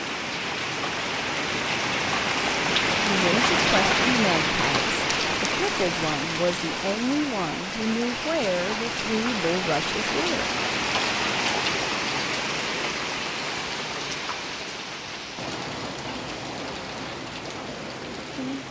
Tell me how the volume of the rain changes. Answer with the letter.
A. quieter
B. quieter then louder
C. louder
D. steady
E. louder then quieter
A.